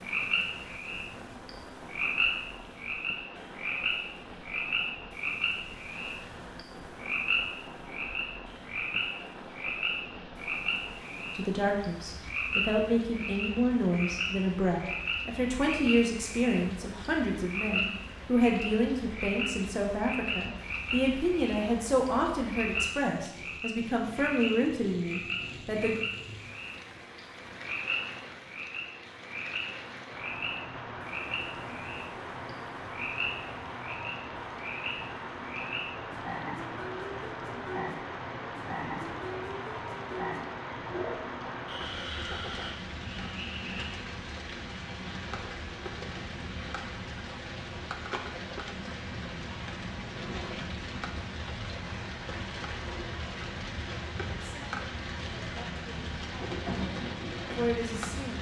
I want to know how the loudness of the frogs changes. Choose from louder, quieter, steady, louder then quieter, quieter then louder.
quieter.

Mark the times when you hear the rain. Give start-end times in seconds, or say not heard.
0.0-58.3.